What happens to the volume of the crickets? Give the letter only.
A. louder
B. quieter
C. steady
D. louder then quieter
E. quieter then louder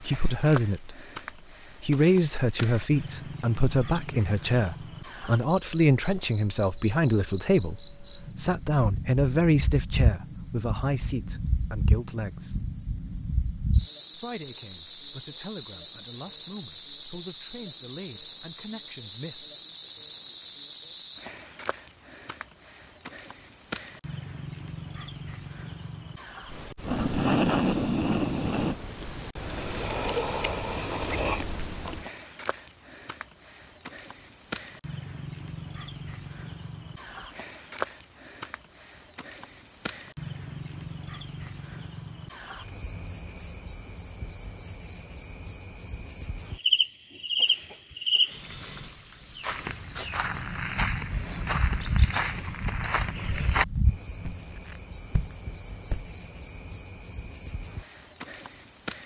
C.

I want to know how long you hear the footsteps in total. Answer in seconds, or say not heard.
7 s.